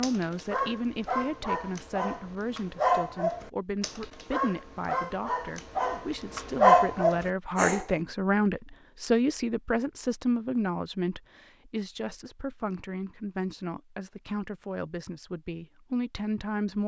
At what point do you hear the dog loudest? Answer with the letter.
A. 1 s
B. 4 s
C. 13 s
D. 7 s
D.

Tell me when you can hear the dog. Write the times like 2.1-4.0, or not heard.
0.0-7.9.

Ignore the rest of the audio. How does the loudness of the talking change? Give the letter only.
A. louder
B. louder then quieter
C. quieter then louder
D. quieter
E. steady
B.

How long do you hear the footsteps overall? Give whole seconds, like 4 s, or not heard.
not heard.